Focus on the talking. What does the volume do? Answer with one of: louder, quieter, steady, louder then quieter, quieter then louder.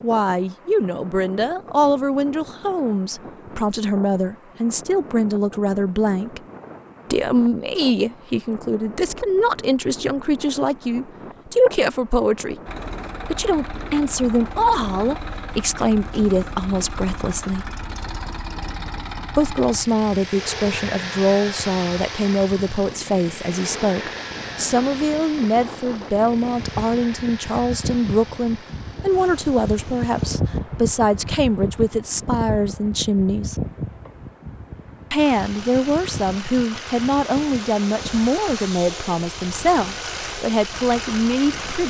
steady.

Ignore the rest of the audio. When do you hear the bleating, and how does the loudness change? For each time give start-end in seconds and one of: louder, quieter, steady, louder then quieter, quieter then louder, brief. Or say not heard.
not heard.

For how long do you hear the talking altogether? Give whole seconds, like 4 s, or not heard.
37 s.